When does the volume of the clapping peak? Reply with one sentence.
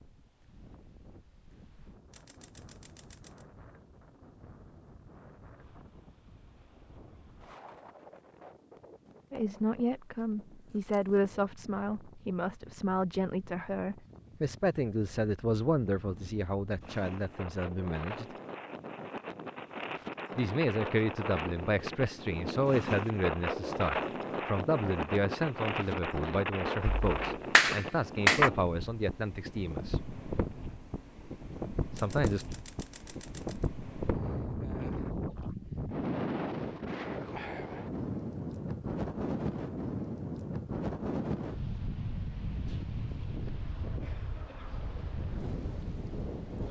The loudest moment of the clapping is at 28 seconds.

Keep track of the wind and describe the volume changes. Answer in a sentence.
The loudness of the wind goes up.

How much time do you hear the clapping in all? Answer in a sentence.
You can hear the clapping for 2 seconds altogether.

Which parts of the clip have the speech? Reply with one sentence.
The speech can be heard from 9.3 to 18.4 s, from 20.4 to 30.0 s and from 31.9 to 32.5 s.